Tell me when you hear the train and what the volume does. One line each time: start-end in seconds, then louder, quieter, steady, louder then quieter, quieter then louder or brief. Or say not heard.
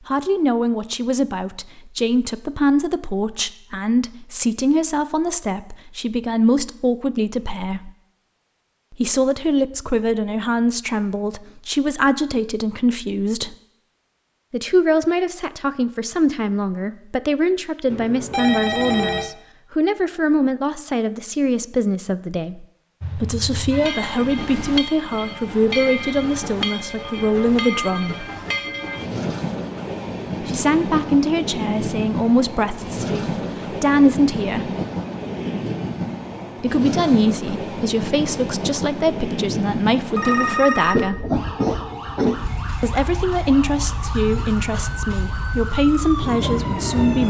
23.0-47.2 steady.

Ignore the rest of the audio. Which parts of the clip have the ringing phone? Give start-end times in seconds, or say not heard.
17.9-19.3, 40.1-41.6.